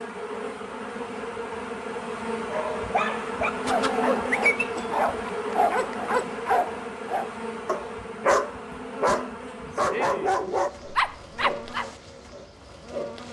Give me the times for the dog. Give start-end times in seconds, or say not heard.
2.5-11.8.